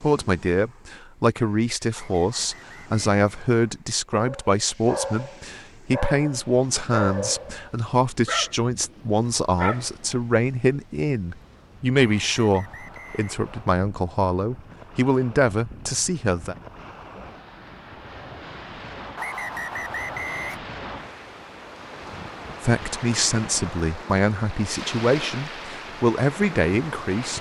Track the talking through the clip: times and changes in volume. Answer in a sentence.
The talking can be heard from 0.0 to 16.6 s, at a steady volume; and from 22.6 to 27.3 s, at a steady volume.